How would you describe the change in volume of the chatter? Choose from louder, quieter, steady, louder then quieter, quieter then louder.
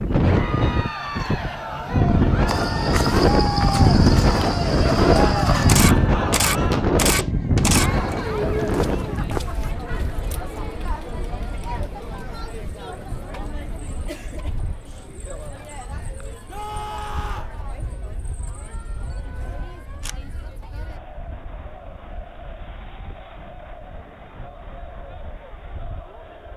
quieter.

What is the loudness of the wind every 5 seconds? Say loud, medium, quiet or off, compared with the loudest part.
loud, loud, quiet, quiet, quiet, quiet.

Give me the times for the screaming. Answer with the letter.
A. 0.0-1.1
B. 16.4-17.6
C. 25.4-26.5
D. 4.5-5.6
B.